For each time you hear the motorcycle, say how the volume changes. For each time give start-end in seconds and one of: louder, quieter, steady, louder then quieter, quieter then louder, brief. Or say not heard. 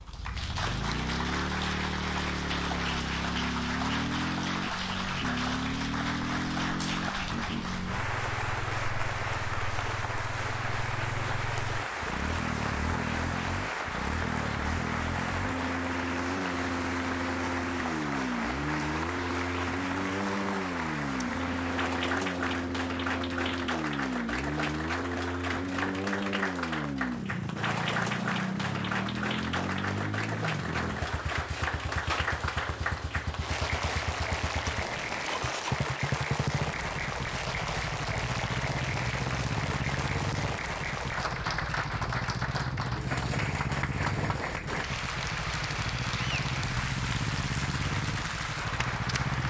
0.0-49.4 steady.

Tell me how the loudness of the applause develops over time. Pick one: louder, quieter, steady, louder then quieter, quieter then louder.
steady.